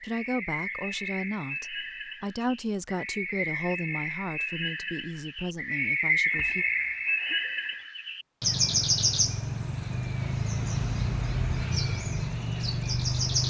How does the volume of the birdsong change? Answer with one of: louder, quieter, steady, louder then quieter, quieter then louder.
louder.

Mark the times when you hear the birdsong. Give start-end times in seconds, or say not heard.
0.0-13.4.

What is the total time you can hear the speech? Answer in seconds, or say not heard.
7 s.